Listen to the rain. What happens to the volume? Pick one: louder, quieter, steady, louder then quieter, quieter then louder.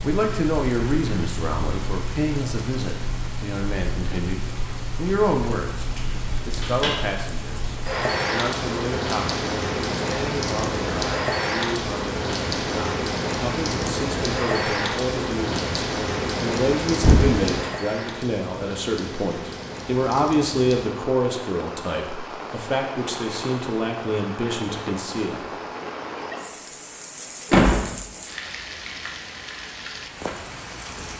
louder then quieter.